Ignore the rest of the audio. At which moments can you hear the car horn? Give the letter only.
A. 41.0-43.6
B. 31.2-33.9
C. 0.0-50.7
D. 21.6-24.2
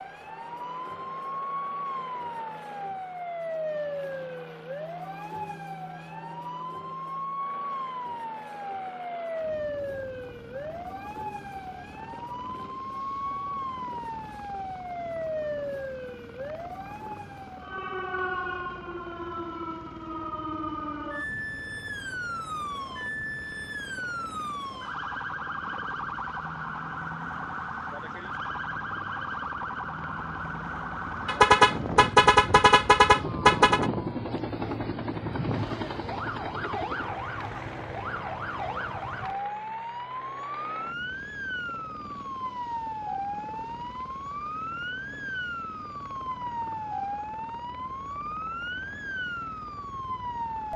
B.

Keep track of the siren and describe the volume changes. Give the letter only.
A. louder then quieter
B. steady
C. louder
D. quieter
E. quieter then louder
B.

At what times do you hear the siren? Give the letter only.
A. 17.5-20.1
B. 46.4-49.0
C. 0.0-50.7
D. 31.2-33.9
C.